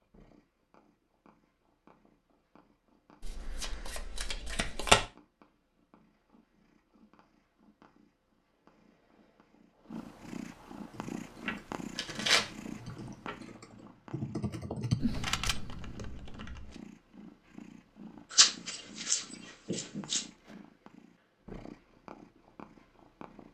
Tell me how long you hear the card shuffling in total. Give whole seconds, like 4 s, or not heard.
6 s.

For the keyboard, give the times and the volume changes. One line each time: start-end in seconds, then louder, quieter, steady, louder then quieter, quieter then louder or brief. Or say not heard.
10.9-16.8 louder then quieter.